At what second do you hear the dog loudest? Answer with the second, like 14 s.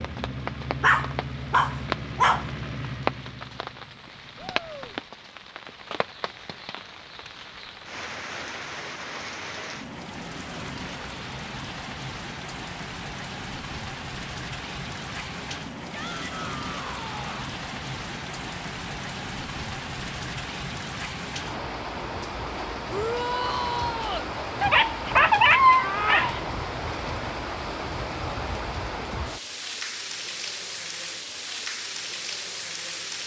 26 s.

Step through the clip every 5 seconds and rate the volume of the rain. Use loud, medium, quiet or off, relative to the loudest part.
loud, medium, loud, loud, loud, loud, loud.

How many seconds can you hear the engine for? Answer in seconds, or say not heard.
5 s.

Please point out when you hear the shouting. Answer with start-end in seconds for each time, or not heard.
4.3-5.0, 15.9-17.5, 22.9-24.3.